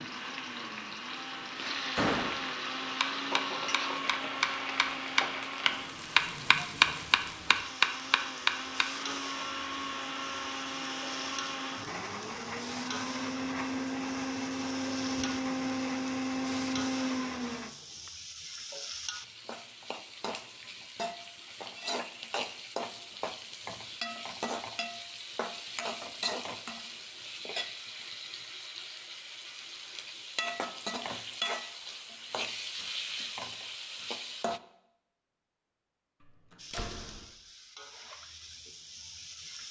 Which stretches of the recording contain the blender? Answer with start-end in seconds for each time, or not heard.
0.0-18.1.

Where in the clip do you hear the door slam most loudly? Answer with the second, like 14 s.
2 s.